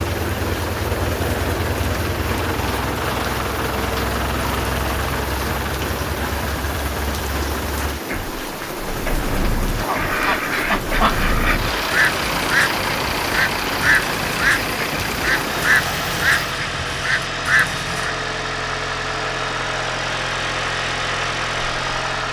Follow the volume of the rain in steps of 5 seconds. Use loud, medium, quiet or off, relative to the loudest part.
loud, loud, loud, loud, off.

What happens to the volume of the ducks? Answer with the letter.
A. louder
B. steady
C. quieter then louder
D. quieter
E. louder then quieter
B.